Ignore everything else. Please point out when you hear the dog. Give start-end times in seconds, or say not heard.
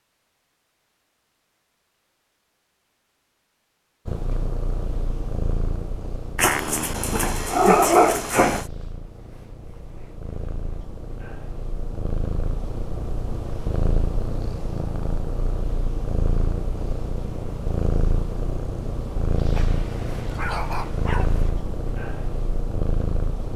6.3-8.7, 19.6-21.5.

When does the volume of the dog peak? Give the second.
8 s.